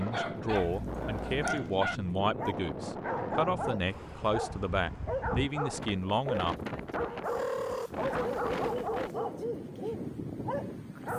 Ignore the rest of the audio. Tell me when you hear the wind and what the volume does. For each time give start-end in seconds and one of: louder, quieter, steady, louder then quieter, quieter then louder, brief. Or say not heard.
0.0-11.1 steady.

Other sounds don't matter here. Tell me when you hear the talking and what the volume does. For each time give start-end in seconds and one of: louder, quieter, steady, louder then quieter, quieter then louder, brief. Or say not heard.
0.0-6.5 steady.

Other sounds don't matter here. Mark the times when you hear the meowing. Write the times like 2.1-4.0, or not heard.
0.5-1.6, 7.2-9.2.